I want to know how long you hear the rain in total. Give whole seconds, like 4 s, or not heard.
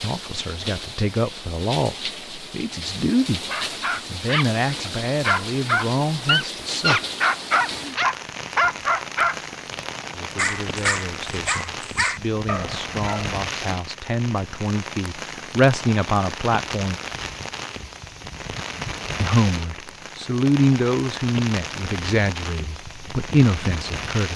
24 s.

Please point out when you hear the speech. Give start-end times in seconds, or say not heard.
0.0-3.5, 4.0-7.0, 10.2-16.9, 19.2-24.3.